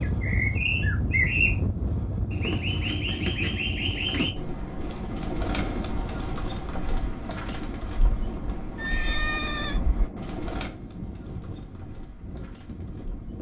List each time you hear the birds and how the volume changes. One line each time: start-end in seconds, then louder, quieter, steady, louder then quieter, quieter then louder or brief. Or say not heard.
0.0-13.3 quieter.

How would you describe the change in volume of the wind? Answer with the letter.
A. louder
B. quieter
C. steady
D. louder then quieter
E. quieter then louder
B.